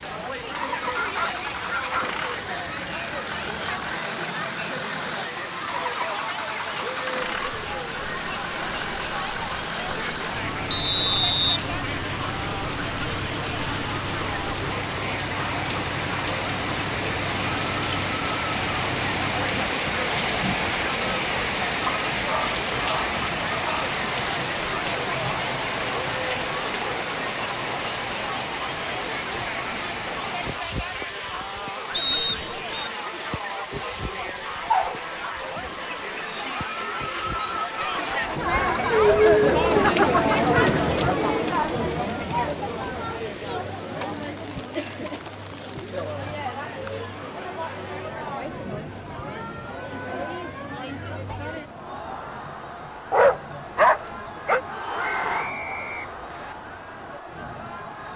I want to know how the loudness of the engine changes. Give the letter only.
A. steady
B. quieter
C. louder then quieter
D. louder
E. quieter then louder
A.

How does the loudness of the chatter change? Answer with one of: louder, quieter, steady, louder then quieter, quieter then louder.
louder then quieter.